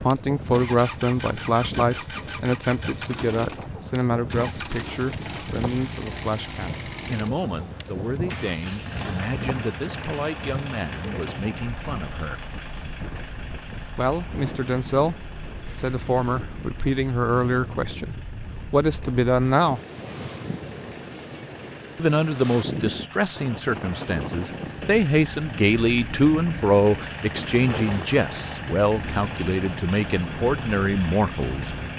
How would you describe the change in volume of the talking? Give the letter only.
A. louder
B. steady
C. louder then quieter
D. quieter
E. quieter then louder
E.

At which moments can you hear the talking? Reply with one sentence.
The talking can be heard from 0.0 to 12.4 s, from 13.9 to 19.8 s and from 21.9 to 31.7 s.